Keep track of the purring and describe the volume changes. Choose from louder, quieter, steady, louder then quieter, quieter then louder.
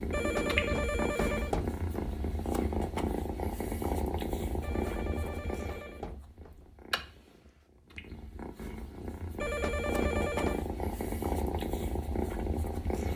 quieter then louder.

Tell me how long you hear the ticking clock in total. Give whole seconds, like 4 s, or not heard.
not heard.